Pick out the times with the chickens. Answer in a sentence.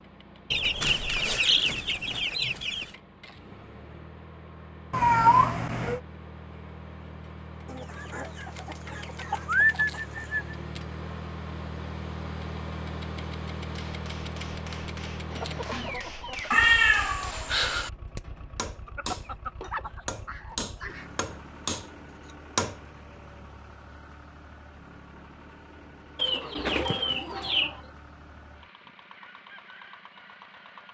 The chickens can be heard from 0.5 to 2.9 s, from 7.7 to 10.6 s, from 15.3 to 16.6 s, from 18.9 to 21.1 s and from 26.1 to 27.8 s.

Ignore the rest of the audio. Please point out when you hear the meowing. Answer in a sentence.
The meowing can be heard from 4.9 to 6.0 s and from 16.5 to 17.9 s.